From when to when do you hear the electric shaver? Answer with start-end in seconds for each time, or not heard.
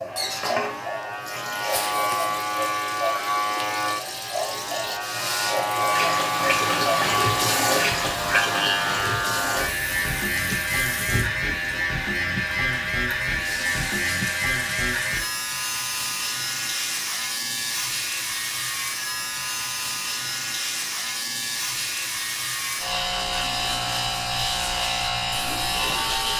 0.0-26.3.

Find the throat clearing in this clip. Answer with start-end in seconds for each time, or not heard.
not heard.